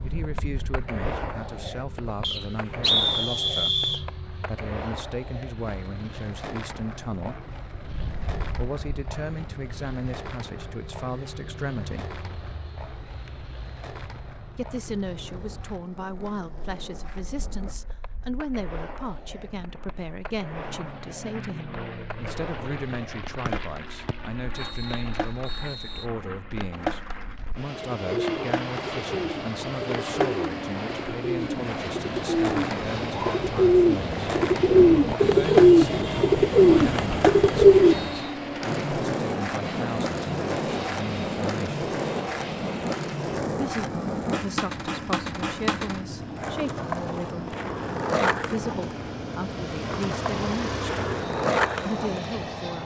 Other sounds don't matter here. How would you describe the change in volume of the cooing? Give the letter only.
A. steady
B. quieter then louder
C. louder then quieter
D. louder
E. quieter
D.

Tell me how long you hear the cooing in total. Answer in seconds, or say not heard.
10 s.